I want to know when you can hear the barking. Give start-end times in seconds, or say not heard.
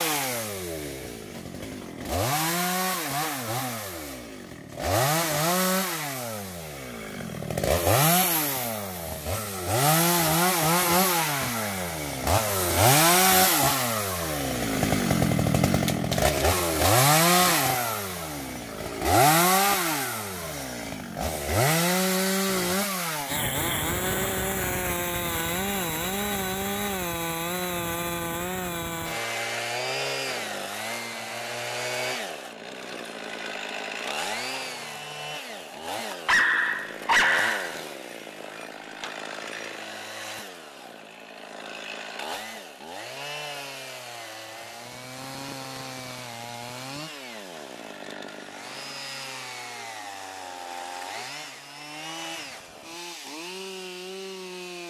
36.2-37.8.